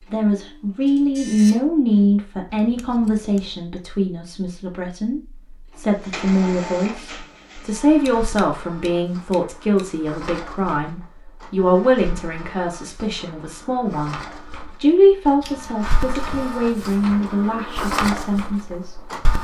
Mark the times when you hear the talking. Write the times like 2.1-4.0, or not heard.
0.1-14.2, 14.8-19.4.